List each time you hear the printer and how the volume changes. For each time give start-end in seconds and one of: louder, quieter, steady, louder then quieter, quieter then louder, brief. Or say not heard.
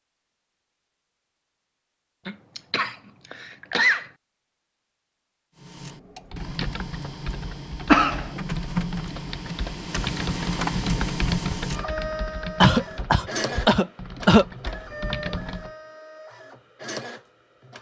5.5-17.7 louder then quieter.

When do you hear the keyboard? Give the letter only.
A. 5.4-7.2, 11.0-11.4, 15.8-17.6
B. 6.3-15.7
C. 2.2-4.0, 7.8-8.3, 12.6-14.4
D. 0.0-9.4
B.